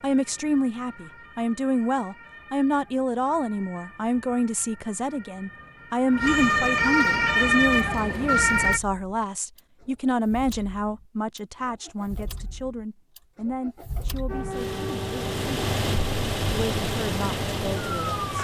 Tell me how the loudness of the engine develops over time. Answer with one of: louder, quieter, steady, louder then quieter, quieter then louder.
louder.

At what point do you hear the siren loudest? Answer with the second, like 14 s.
7 s.